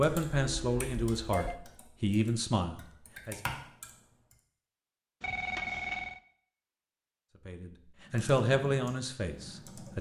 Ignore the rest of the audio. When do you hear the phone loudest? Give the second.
6 s.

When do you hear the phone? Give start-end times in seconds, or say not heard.
0.1-1.6, 5.2-6.2.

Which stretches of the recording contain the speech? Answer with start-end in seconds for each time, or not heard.
0.0-3.4, 7.5-9.9.